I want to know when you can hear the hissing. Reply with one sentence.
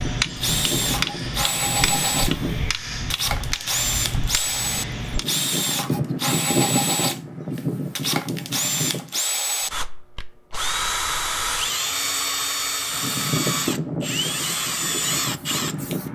The hissing can be heard from 0.0 to 2.8 s, from 5.0 to 9.2 s and from 12.9 to 16.0 s.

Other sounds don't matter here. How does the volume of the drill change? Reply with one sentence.
The loudness of the drill stays about the same.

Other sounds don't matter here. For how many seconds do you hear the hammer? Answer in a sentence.
You can hear the hammer for 5 seconds altogether.